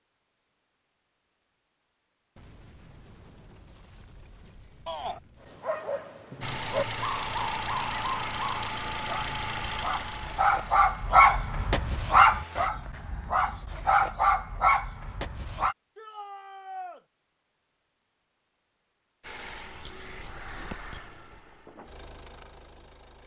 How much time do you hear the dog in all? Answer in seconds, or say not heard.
10 s.